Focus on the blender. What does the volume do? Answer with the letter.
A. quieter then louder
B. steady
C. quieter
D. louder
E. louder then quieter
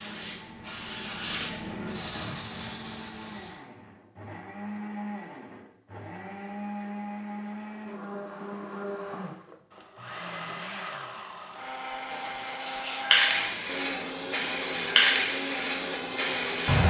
D.